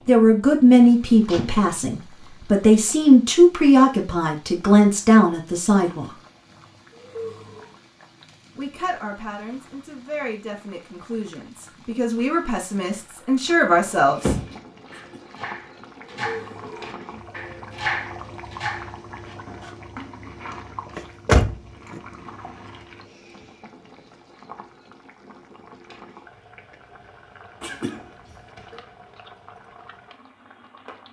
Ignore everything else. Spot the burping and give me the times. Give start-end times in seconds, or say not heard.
5.8-6.2, 6.9-7.8, 14.9-15.3, 16.1-16.9, 27.6-28.8.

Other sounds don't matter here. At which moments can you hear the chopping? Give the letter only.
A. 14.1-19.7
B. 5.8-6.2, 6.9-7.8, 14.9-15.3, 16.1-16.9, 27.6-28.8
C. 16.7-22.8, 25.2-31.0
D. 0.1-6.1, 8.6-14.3
A.